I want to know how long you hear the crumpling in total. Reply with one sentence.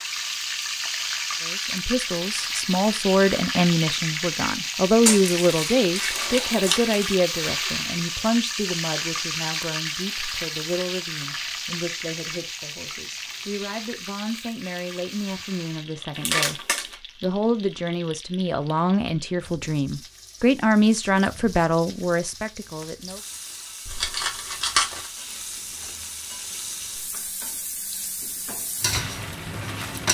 You can hear the crumpling for 4 seconds altogether.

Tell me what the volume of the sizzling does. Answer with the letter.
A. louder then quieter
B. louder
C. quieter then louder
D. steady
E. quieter
C.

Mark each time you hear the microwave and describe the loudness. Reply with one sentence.
The microwave can't be heard in this clip.